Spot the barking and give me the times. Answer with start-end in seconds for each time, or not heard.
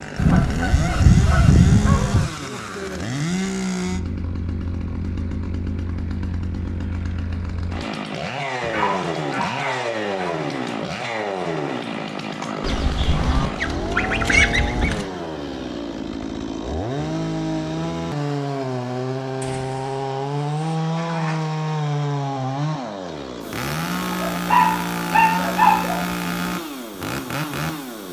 8.6-10.3, 24.1-26.0.